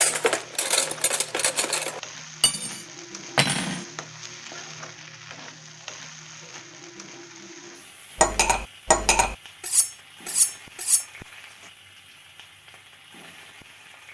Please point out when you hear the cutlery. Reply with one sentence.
You can hear the cutlery from 0.0 to 3.9 s and from 8.2 to 11.1 s.